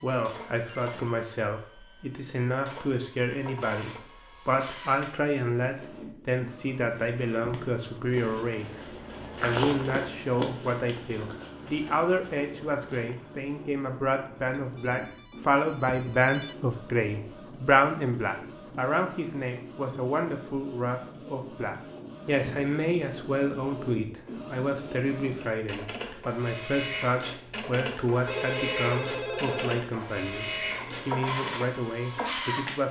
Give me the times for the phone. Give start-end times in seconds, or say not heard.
0.1-1.1, 14.6-16.6, 28.2-29.9.